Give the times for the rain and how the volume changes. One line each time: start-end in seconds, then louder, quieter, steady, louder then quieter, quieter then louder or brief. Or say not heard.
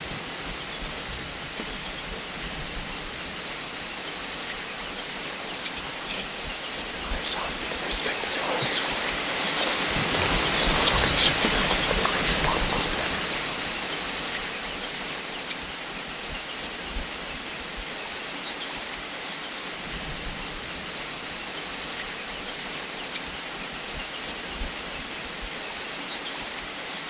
0.0-27.0 louder then quieter.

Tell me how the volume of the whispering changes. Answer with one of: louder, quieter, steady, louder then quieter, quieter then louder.
louder.